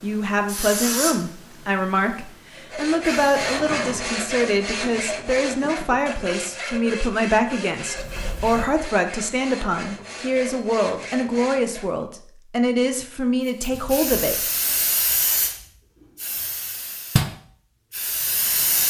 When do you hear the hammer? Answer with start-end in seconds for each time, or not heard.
not heard.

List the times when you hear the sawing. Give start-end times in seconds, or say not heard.
2.5-12.0.